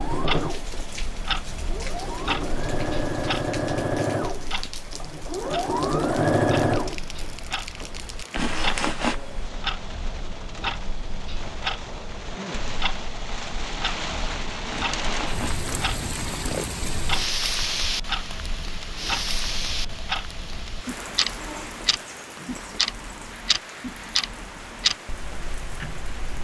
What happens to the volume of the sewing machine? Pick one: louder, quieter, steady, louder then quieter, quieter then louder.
louder.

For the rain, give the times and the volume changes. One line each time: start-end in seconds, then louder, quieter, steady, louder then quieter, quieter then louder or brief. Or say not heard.
0.0-26.3 louder then quieter.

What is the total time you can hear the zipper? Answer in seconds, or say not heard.
3 s.